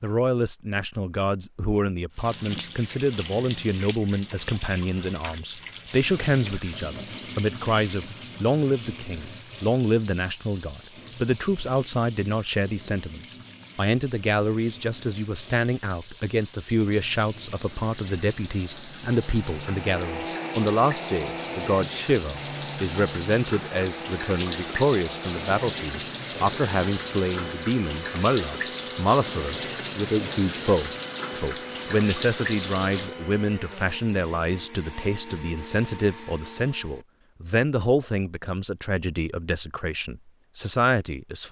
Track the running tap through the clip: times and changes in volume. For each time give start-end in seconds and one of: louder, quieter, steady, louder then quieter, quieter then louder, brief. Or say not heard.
2.1-33.2 quieter then louder.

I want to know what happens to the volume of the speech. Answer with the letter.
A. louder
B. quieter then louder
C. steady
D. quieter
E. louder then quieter
C.